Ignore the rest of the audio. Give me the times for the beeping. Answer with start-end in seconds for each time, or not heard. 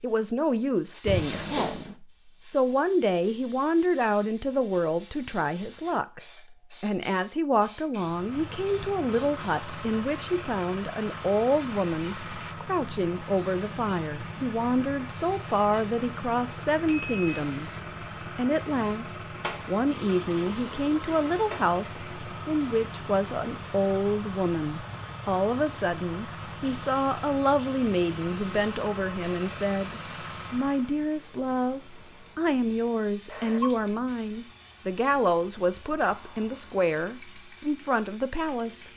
1.1-1.9, 16.8-17.2, 33.2-33.8.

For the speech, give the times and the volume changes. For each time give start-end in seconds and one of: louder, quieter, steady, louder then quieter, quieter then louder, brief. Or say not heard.
0.0-38.9 steady.